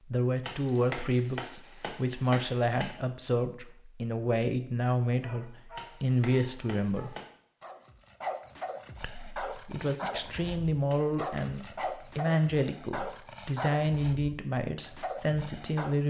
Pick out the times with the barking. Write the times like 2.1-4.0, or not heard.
5.0-15.9.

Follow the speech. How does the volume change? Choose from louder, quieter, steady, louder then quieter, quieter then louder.
steady.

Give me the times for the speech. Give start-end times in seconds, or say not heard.
0.1-7.2, 9.0-16.0.